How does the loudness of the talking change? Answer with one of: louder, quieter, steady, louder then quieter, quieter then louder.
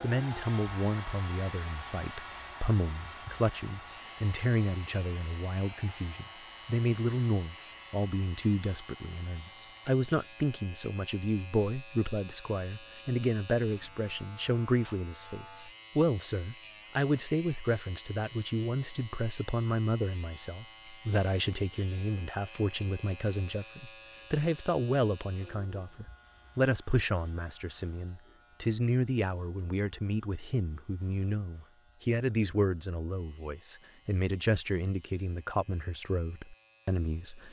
steady.